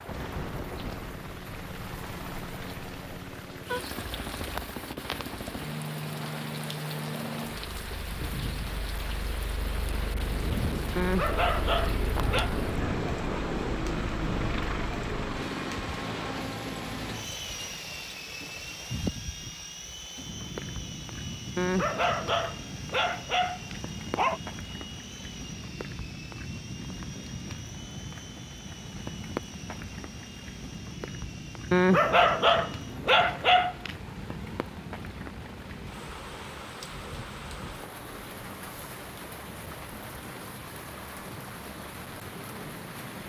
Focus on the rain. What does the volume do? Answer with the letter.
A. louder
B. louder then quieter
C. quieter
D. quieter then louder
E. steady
E.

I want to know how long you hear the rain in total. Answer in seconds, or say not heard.
43 s.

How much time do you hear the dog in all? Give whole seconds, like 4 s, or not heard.
7 s.